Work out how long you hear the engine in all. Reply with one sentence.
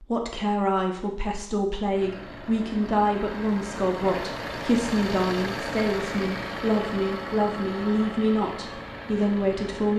The engine can be heard for 8 seconds in total.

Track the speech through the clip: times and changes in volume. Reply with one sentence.
The speech can be heard from 0.0 to 9.9 s, at a steady volume.